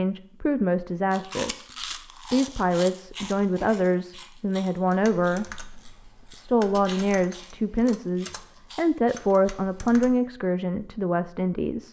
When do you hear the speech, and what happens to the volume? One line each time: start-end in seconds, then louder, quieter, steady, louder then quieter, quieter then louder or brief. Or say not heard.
0.0-11.8 steady.